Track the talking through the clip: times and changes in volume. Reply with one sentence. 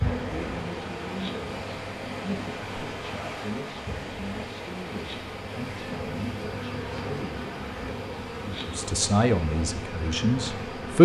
The talking can be heard from 0.0 to 7.5 s, at a steady volume; and briefly from 8.4 to 11.0 s.